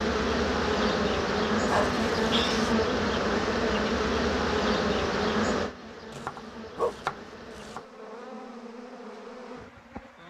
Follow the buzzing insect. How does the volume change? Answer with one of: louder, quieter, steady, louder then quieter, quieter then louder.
quieter.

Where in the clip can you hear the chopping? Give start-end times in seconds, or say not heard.
6.1-7.8.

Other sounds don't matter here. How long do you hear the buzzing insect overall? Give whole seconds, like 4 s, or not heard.
10 s.